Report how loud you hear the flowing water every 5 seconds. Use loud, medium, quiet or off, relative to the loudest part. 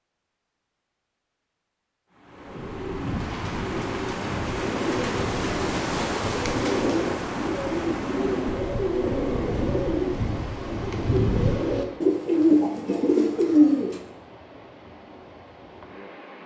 loud, loud, quiet, quiet.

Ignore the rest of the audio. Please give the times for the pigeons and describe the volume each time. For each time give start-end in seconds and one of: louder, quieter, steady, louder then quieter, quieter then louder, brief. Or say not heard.
2.3-14.0 louder.